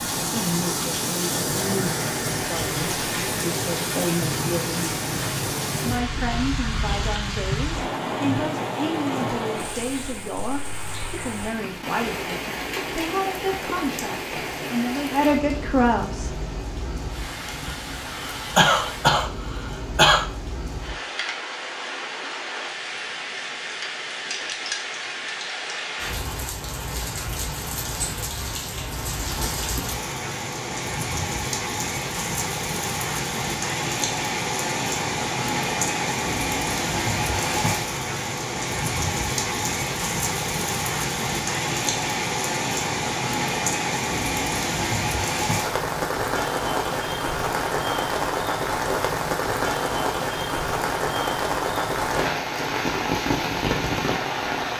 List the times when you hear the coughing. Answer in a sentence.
The coughing can be heard from 18.1 to 20.2 s.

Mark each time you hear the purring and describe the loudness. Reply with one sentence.
You can't hear the purring here.